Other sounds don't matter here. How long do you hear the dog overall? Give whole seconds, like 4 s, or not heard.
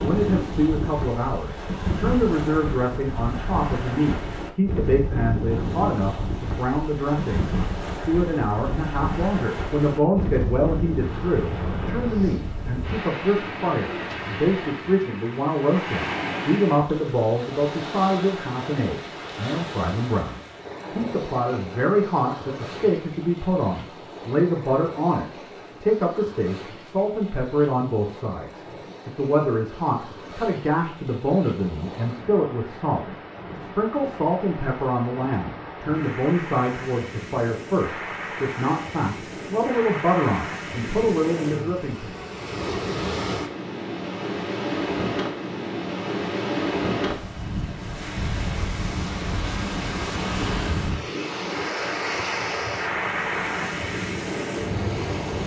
not heard.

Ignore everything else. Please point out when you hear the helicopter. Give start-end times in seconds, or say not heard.
not heard.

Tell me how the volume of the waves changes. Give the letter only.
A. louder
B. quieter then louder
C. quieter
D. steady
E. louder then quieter
B.